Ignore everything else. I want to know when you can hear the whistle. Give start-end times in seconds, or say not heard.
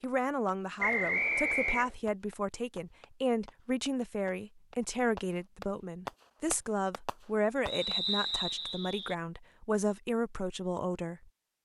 0.8-1.9, 7.7-9.2.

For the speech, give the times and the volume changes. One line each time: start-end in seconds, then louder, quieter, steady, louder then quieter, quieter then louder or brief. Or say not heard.
0.0-11.3 steady.